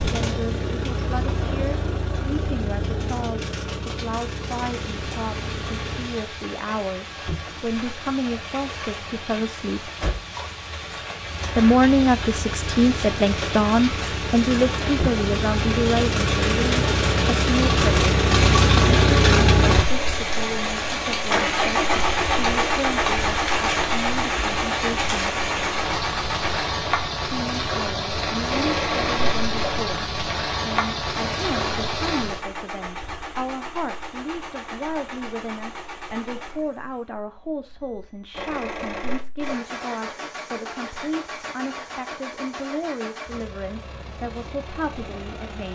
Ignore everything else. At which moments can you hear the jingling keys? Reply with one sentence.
You can't hear the jingling keys here.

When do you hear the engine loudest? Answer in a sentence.
The loudest moment of the engine is at 19 seconds.